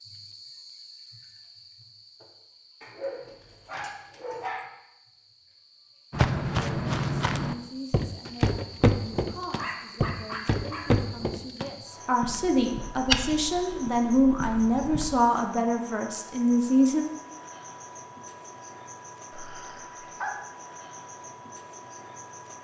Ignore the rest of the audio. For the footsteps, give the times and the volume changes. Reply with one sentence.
The footsteps can be heard from 6.1 to 15.2 s, getting quieter then louder.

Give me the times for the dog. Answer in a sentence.
The dog can be heard from 2.8 to 4.7 s, from 9.6 to 11.1 s and from 19.3 to 20.4 s.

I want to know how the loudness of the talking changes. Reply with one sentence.
The loudness of the talking goes up.